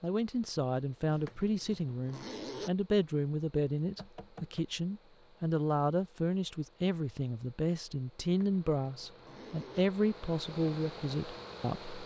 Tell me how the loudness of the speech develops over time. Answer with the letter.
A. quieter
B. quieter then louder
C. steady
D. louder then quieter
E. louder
C.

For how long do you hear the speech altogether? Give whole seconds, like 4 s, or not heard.
12 s.